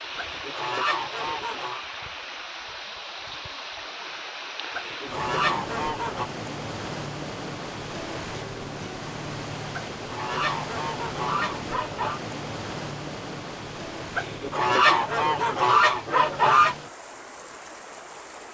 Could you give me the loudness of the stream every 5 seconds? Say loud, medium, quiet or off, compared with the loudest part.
loud, loud, loud, medium.